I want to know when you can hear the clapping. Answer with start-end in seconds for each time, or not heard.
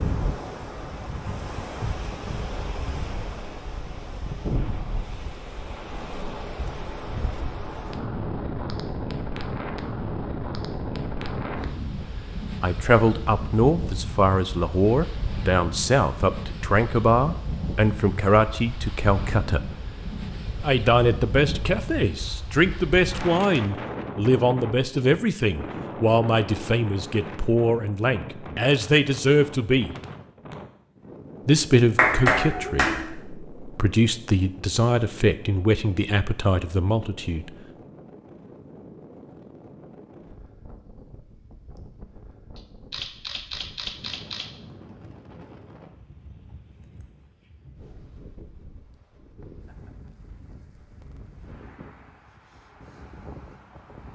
31.9-33.0.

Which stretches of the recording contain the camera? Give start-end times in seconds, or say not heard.
42.5-44.5.